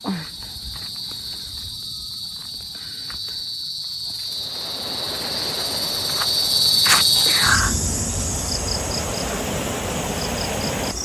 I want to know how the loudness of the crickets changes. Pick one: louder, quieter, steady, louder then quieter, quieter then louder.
louder then quieter.